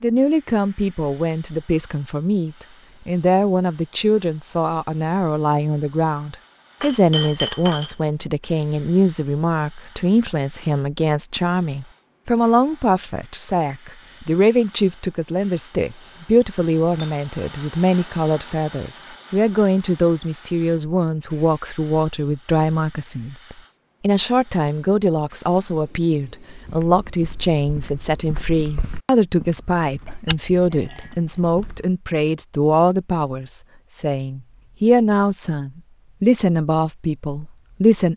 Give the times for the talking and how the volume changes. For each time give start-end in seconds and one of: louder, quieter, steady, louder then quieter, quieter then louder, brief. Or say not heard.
0.0-38.1 steady.